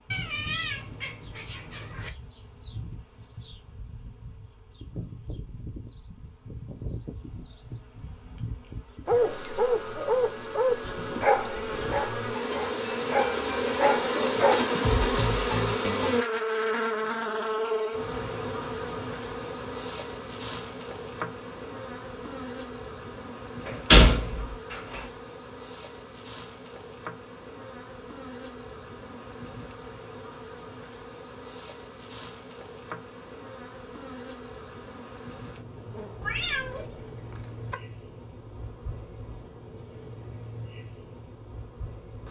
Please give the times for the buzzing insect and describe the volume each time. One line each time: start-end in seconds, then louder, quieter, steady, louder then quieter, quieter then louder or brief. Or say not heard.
0.0-42.2 louder then quieter.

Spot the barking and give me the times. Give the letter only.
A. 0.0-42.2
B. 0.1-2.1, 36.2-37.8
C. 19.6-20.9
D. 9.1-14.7
D.